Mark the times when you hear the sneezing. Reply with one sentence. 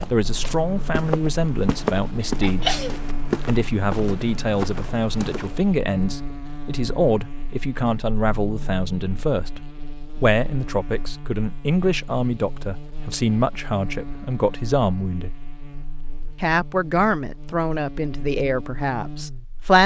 You can hear the sneezing from 2.2 to 3.0 s.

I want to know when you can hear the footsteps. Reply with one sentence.
You can hear the footsteps from 0.0 to 5.7 s.